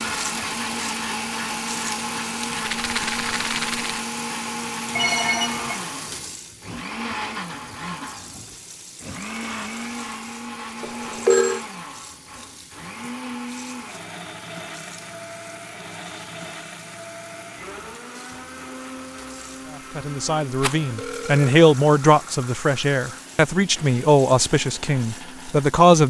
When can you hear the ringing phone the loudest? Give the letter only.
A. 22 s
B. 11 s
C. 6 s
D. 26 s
B.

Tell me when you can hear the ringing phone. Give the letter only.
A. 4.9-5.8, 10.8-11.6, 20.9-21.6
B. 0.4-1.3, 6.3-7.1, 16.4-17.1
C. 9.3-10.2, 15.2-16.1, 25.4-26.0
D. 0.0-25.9
A.